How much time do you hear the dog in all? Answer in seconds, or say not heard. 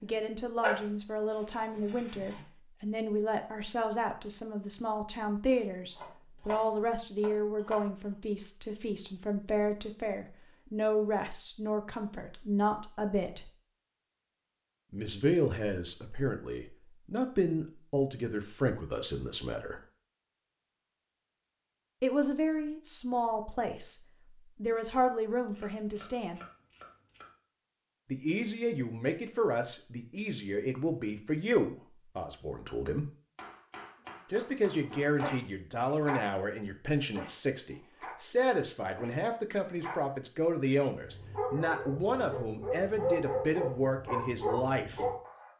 10 s.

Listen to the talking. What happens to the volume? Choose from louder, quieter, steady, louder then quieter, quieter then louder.
steady.